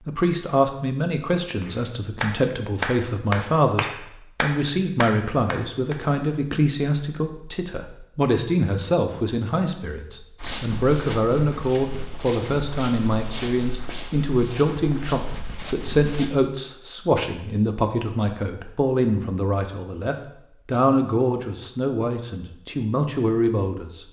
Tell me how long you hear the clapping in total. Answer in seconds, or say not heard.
4 s.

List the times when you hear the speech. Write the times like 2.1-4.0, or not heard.
0.1-24.0.